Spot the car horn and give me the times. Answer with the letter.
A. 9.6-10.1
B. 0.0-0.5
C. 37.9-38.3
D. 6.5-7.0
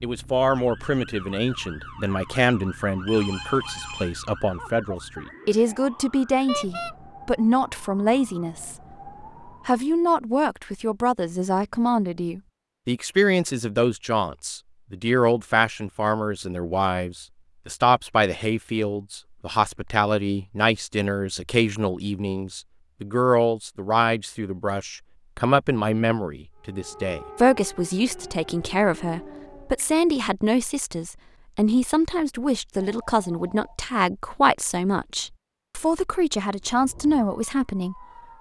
D.